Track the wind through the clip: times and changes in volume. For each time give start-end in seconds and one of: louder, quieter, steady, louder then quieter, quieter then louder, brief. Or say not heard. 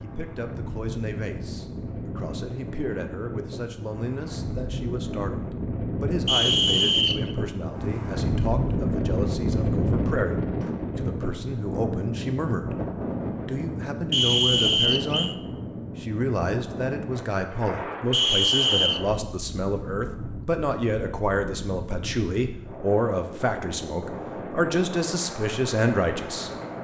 0.0-26.8 louder then quieter.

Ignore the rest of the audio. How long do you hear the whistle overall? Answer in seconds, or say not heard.
3 s.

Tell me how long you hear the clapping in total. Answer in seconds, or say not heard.
not heard.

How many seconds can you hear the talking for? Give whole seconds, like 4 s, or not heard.
25 s.